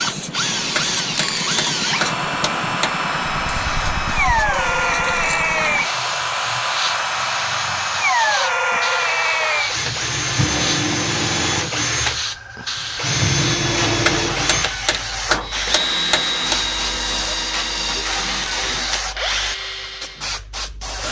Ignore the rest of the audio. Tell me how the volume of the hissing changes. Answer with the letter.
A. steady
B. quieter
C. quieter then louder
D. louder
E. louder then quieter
A.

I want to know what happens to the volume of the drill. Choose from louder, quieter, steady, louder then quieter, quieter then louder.
steady.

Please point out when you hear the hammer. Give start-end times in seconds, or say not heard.
0.8-3.0, 14.1-16.6.